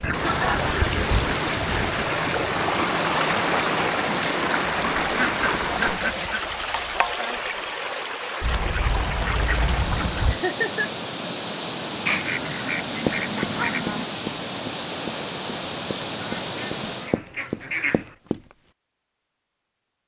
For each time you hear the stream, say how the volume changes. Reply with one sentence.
You can hear the stream from 0.0 to 17.2 s, getting quieter.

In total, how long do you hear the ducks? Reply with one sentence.
You can hear the ducks for 10 seconds altogether.